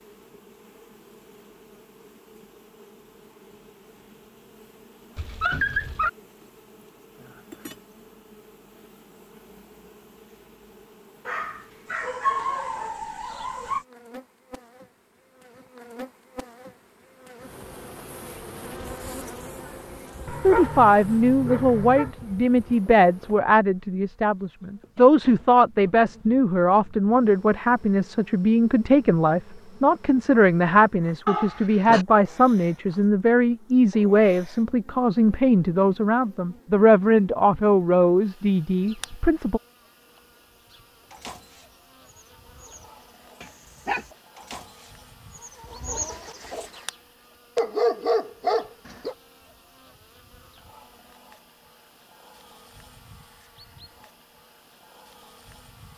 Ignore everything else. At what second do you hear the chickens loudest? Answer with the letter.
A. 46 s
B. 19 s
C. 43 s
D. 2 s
A.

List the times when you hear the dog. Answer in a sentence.
The dog can be heard from 5.2 to 6.1 s, from 11.2 to 13.8 s, from 20.2 to 22.1 s, from 31.2 to 32.0 s, from 43.4 to 44.0 s and from 47.5 to 49.1 s.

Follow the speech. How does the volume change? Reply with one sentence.
The volume of the speech stays about the same.